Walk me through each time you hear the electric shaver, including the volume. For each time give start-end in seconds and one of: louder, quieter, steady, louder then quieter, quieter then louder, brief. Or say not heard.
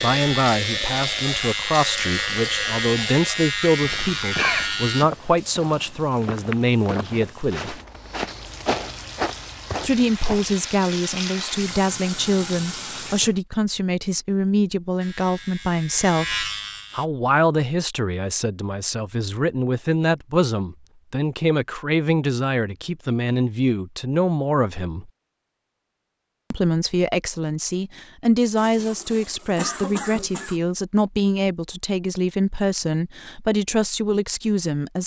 0.0-5.0 steady
15.0-17.1 brief.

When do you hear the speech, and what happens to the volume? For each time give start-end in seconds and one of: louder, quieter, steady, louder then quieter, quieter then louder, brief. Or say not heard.
0.0-7.8 steady
9.8-25.1 steady
26.5-35.0 steady.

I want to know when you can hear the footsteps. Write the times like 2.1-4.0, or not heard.
3.8-10.6.